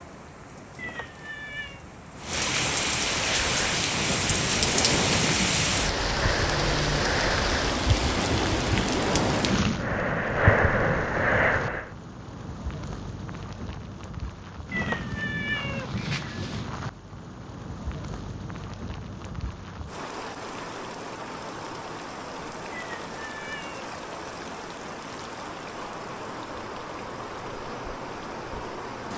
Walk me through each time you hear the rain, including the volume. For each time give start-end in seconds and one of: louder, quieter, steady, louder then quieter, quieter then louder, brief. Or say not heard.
0.0-29.1 quieter.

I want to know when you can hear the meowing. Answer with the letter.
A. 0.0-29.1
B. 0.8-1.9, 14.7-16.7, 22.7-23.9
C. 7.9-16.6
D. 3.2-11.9
B.